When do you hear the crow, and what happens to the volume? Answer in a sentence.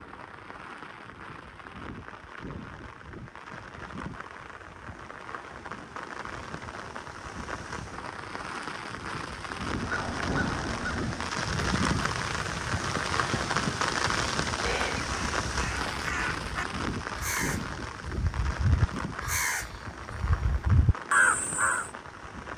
The crow can be heard from 9.8 to 21.9 s, getting louder.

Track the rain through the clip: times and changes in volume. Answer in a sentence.
You can hear the rain from 0.0 to 22.5 s, getting louder then quieter.